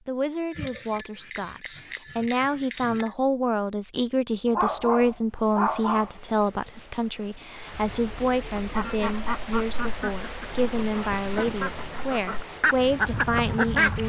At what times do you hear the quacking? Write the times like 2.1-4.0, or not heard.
8.6-14.0.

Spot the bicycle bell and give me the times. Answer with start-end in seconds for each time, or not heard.
0.5-3.1.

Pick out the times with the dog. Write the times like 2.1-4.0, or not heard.
4.5-6.1.